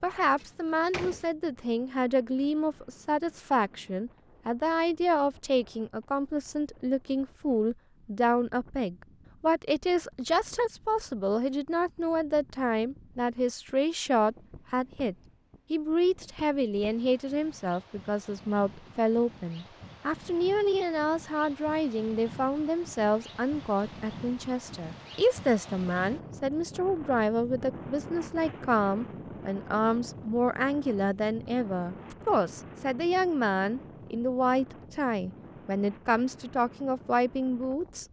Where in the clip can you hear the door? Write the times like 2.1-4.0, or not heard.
0.3-1.3.